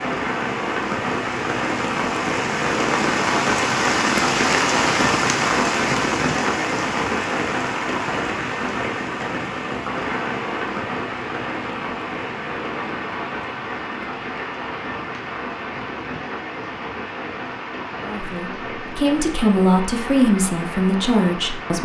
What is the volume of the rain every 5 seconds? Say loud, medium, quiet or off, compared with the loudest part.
loud, loud, medium, medium, medium.